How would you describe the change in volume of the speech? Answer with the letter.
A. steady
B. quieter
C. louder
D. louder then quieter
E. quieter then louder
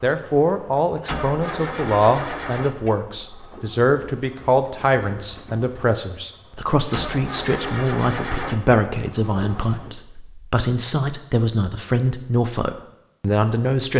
A.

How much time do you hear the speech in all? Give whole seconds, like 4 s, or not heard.
14 s.